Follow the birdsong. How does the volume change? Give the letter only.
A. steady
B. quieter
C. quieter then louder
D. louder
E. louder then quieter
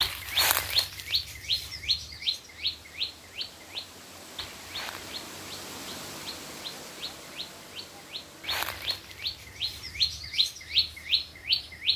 C.